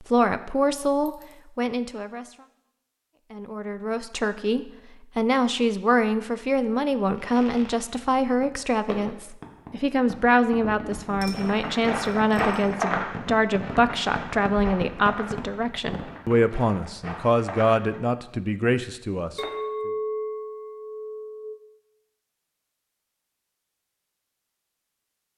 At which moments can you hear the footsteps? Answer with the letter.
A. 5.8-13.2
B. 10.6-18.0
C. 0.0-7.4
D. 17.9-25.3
B.